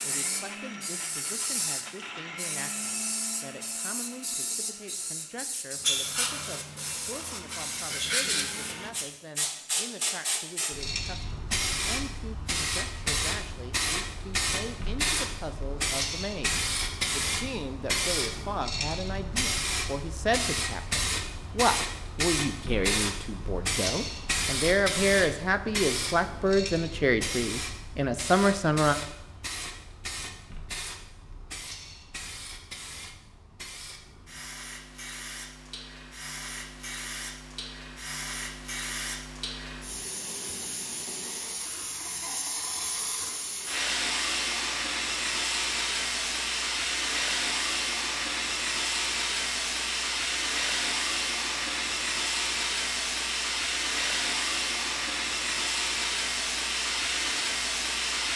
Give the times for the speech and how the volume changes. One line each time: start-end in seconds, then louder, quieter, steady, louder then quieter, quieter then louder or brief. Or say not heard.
0.0-28.9 louder.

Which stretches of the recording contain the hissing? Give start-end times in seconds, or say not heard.
0.0-58.3.